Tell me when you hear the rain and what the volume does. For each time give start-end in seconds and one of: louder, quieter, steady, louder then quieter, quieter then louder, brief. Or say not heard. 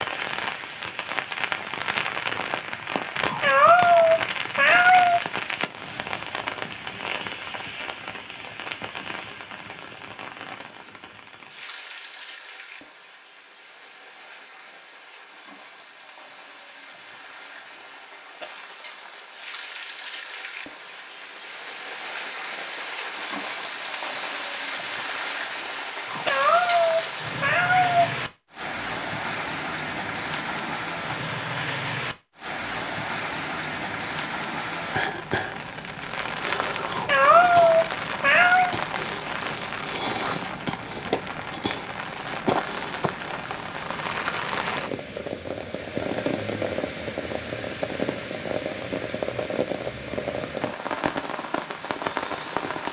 0.0-52.8 quieter then louder.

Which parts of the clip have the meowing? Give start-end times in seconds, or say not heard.
3.2-5.2, 26.1-28.1, 36.9-38.8.